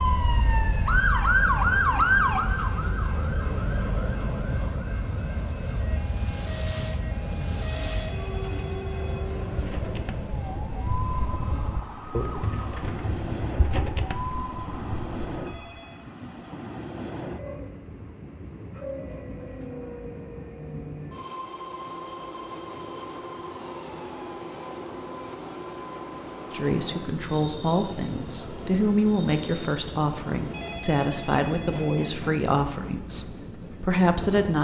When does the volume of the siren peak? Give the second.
2 s.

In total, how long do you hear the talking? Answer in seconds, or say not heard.
8 s.